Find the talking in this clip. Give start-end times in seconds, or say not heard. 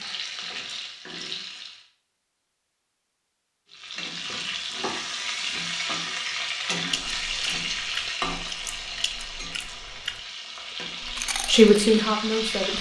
11.4-12.7.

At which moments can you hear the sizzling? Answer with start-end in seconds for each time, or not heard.
0.0-1.8, 3.7-12.7.